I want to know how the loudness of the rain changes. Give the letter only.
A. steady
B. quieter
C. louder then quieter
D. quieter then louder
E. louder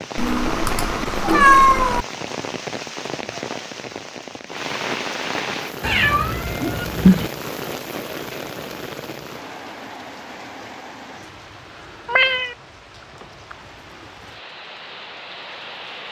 B.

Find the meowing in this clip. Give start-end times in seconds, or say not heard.
0.1-2.0, 5.8-7.3, 12.1-12.6.